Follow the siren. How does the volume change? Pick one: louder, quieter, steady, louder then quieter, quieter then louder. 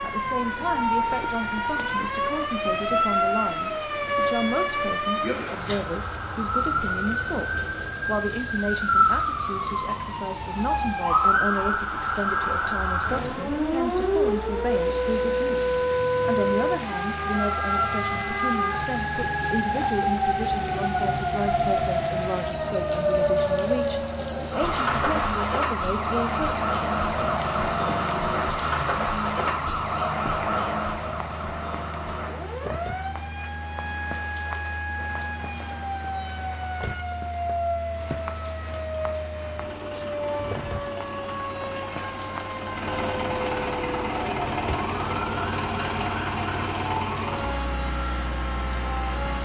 quieter.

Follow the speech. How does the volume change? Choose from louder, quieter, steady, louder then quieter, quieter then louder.
steady.